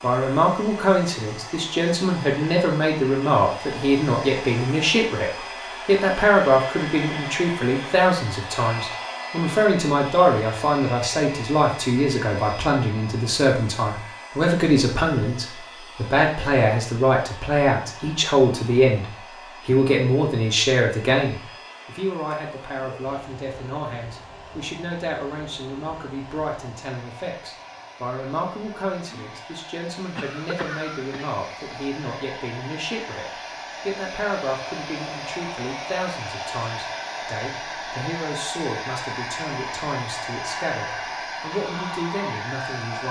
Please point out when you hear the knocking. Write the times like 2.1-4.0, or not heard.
not heard.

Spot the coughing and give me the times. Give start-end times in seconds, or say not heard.
30.1-31.4.